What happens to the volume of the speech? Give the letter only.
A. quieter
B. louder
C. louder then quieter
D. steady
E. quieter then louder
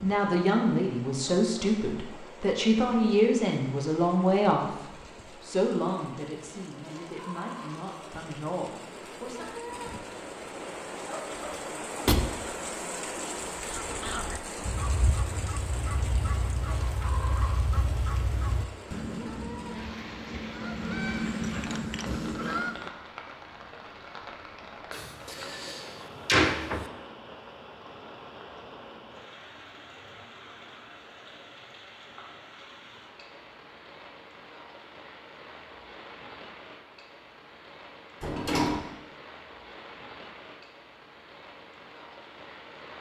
A.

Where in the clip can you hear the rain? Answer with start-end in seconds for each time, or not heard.
0.0-42.9.